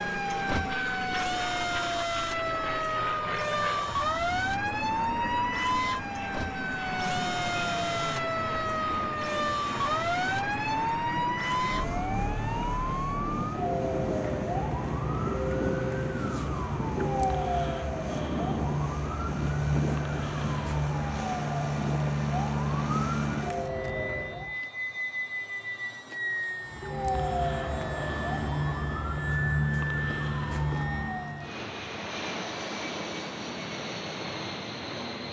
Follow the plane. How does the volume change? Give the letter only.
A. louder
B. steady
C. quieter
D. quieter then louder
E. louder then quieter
B.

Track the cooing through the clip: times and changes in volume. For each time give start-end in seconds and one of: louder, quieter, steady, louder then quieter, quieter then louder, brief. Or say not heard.
not heard.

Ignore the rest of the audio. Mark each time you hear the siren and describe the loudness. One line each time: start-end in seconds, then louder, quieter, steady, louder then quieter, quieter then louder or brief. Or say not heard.
0.0-24.6 steady
26.6-31.6 steady.